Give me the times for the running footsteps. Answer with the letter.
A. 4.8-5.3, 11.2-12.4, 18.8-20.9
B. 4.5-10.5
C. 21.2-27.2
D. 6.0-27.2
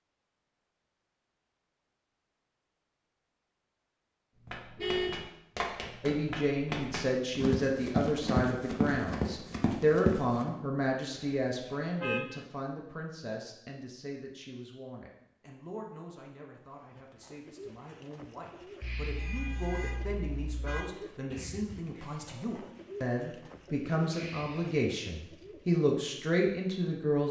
B.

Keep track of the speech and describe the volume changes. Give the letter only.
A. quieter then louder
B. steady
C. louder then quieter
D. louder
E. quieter
A.